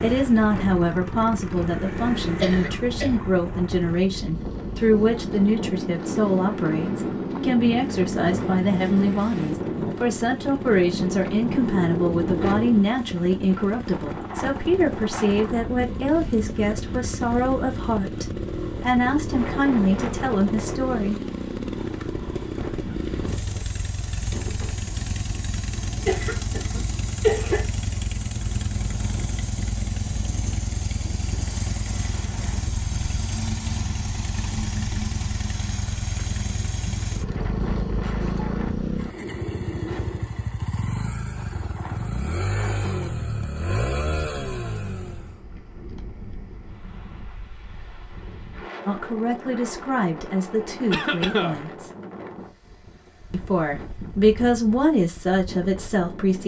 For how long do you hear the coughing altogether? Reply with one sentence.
The coughing can be heard for 3 seconds in total.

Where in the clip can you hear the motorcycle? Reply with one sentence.
The motorcycle can be heard from 0.0 to 45.4 s.